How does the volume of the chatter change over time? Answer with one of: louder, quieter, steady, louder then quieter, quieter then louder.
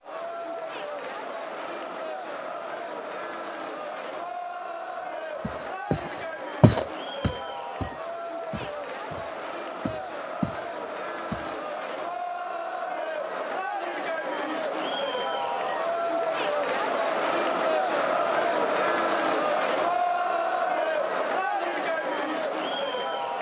louder.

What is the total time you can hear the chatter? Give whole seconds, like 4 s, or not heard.
23 s.